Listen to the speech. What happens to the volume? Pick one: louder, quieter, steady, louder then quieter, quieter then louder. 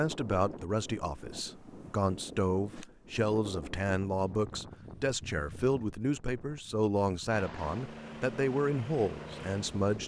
steady.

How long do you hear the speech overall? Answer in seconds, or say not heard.
10 s.